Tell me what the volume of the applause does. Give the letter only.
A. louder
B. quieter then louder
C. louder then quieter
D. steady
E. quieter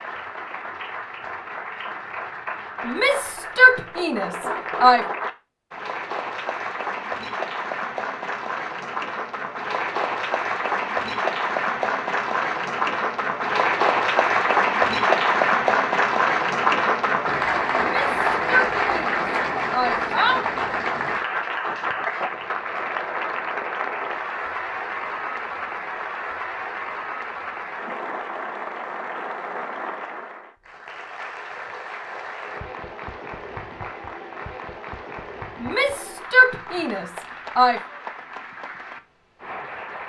C.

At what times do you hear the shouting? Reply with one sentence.
The shouting can be heard from 2.9 to 5.0 s, from 17.8 to 20.4 s and from 35.6 to 37.8 s.